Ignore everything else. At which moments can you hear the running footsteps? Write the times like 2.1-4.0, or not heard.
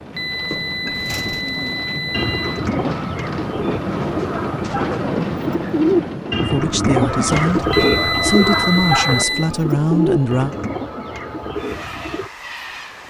not heard.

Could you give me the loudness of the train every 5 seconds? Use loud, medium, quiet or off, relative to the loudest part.
loud, loud, medium.